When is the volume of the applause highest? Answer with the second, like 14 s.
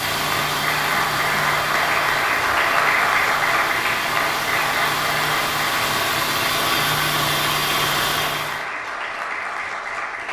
3 s.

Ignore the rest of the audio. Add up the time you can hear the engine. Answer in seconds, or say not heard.
9 s.